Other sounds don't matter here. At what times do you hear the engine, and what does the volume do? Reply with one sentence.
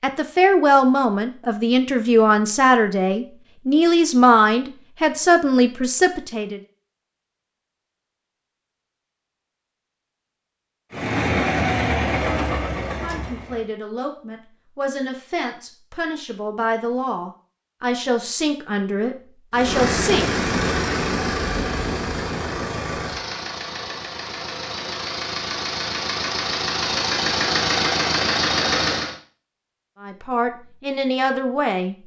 The engine can be heard briefly from 10.9 to 13.7 s; and from 19.5 to 29.1 s, getting quieter then louder.